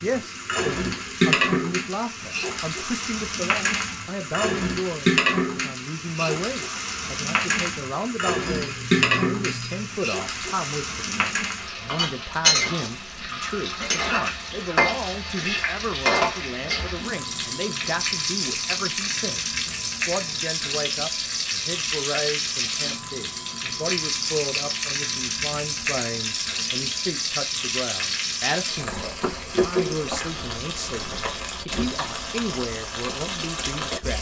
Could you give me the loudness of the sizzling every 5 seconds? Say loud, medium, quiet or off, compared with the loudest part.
loud, loud, loud, loud, loud, loud, medium.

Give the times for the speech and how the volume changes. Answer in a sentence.
The speech can be heard from 0.0 to 34.1 s, at a steady volume.